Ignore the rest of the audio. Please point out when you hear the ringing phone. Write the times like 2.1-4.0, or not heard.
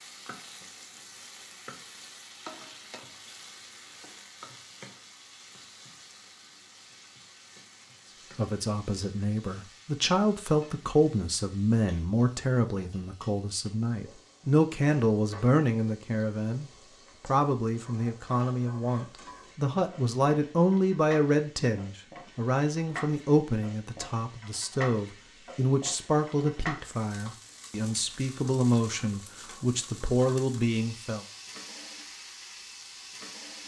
not heard.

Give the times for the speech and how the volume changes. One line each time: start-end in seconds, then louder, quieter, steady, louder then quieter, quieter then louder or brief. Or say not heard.
8.3-31.2 steady.